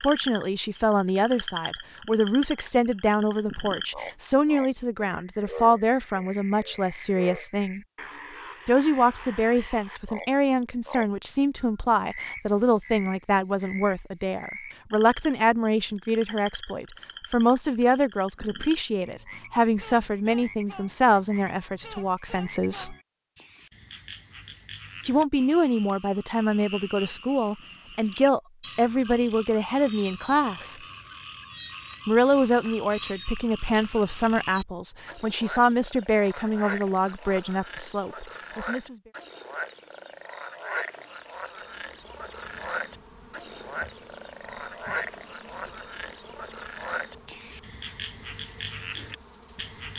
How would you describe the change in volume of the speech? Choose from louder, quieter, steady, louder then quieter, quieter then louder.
steady.